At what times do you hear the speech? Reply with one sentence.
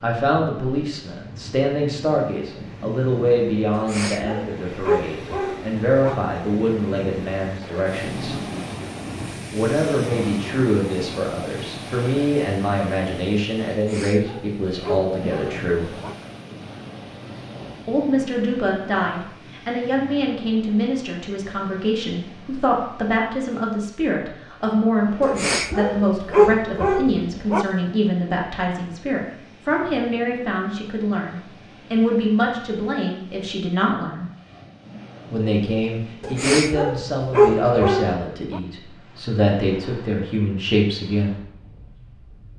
You can hear the speech from 0.0 to 8.4 s, from 9.5 to 15.9 s, from 17.9 to 34.2 s and from 35.3 to 41.4 s.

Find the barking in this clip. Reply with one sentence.
You can hear the barking from 3.7 to 6.2 s, from 13.7 to 16.1 s, from 25.2 to 27.6 s and from 36.2 to 38.6 s.